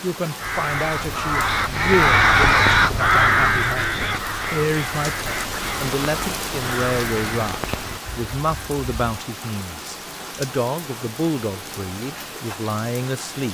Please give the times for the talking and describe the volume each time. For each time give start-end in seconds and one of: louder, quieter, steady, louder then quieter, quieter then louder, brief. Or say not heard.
0.0-13.4 steady.